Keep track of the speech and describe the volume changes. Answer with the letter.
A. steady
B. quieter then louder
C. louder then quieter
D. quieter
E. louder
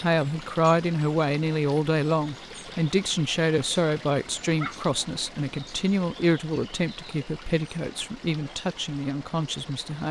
D.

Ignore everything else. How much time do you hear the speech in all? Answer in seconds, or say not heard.
10 s.